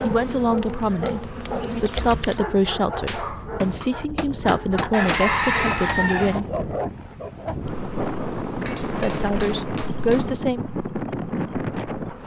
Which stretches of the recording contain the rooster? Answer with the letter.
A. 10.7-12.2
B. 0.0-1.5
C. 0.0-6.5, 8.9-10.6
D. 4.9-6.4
D.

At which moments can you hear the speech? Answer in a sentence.
You can hear the speech from 0.0 to 6.5 s and from 8.9 to 10.6 s.